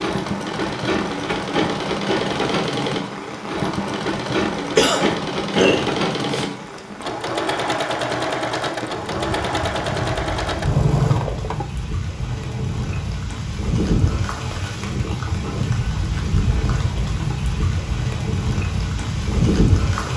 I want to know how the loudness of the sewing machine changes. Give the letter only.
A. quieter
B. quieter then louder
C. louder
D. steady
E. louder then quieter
A.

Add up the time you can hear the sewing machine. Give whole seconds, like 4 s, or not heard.
20 s.